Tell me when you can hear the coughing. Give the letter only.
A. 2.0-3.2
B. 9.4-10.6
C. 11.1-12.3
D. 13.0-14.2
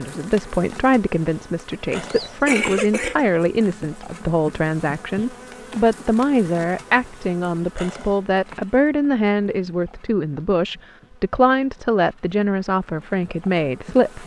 A.